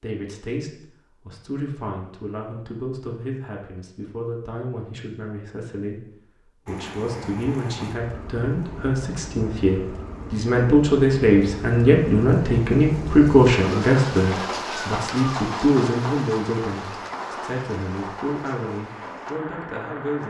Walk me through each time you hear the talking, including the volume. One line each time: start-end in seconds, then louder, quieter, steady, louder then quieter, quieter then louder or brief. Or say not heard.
0.0-20.2 louder then quieter.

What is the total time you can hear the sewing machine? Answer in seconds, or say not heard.
not heard.